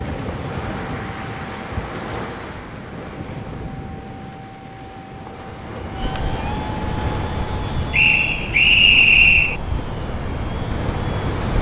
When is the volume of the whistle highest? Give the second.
9 s.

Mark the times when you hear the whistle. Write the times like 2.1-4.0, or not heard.
7.9-9.6.